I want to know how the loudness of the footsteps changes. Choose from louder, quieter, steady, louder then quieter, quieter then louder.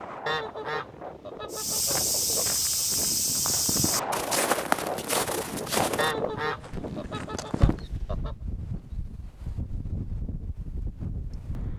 quieter.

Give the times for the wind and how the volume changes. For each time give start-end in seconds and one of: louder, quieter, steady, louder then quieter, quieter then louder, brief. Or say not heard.
0.0-11.7 louder then quieter.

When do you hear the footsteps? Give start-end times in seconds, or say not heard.
1.5-8.0.